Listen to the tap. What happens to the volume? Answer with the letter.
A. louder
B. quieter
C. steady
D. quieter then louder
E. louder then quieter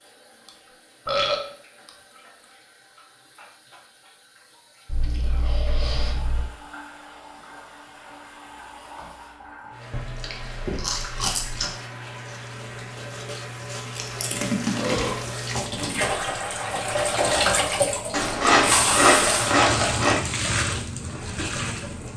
A.